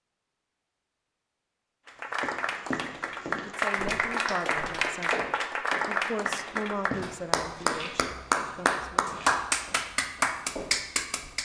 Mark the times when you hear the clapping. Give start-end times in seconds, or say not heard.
1.9-11.4.